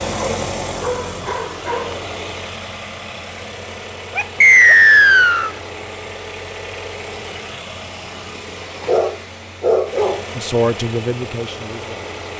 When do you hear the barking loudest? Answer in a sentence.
The volume of the barking peaks at 10 seconds.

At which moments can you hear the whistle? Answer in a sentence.
The whistle can be heard from 4.4 to 5.5 s.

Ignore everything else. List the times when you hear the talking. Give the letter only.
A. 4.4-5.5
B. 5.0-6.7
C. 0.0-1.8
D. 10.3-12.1
D.